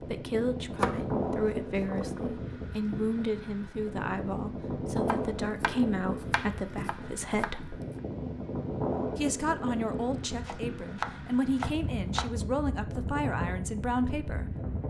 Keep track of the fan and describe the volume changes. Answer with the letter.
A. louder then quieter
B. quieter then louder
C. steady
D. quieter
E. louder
C.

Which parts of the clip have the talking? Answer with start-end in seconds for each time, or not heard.
0.0-7.8, 9.2-14.6.